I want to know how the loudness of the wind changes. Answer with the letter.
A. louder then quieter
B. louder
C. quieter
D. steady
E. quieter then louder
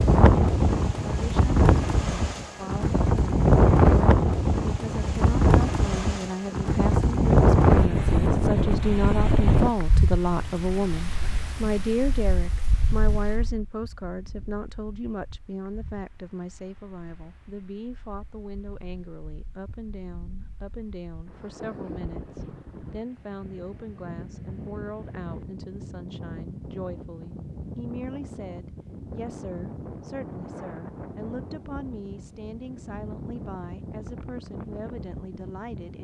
E.